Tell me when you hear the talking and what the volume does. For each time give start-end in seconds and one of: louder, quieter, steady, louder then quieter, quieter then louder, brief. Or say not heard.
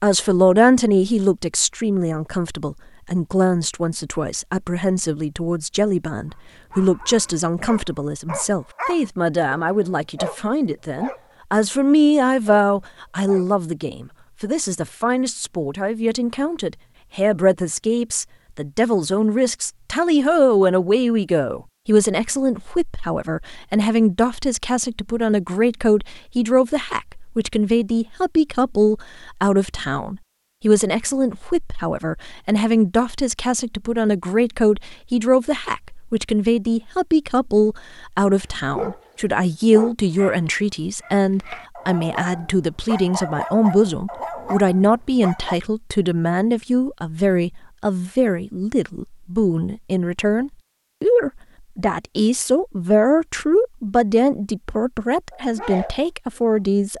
0.0-56.9 steady.